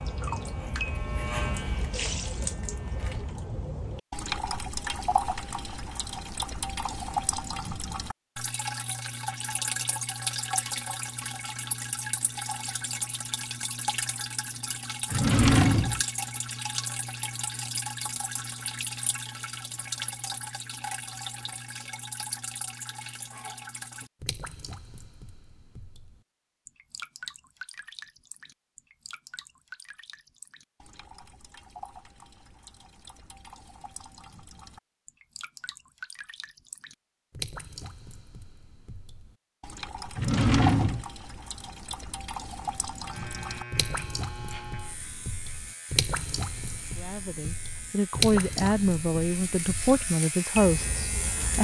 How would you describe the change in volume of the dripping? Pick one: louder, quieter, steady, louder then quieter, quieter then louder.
quieter then louder.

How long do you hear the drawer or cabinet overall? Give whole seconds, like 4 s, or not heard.
2 s.